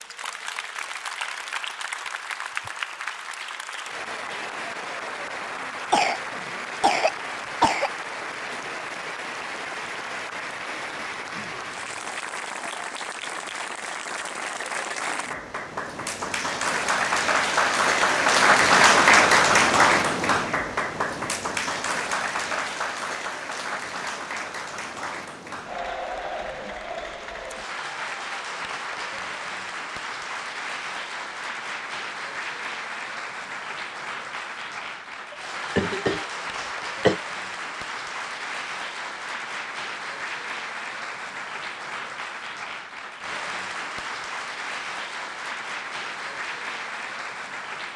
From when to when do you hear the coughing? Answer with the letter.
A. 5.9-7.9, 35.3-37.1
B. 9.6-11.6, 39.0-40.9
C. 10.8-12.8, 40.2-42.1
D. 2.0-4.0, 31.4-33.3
A.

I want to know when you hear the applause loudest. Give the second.
19 s.